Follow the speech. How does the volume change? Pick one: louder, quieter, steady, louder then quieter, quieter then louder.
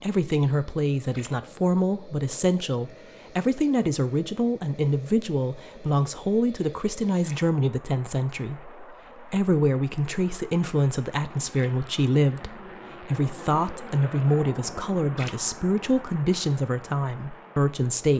steady.